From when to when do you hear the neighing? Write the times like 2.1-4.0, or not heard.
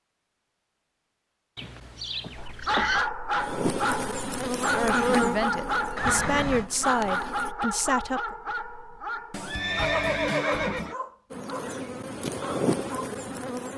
1.6-3.1, 6.0-6.7, 9.3-10.9.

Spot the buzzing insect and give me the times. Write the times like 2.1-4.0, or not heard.
3.4-7.5, 11.3-13.7.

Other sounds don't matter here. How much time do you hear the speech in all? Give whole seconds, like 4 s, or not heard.
4 s.